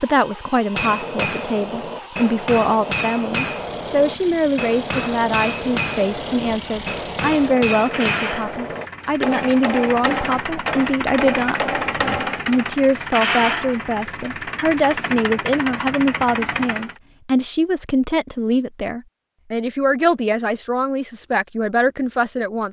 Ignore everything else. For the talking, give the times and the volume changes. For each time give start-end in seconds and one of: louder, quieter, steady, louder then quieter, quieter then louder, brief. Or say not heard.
0.0-22.6 steady.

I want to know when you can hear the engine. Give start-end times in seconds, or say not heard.
0.0-17.0.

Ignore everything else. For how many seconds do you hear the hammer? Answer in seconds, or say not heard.
12 s.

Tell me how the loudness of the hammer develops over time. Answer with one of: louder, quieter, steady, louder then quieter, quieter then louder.
steady.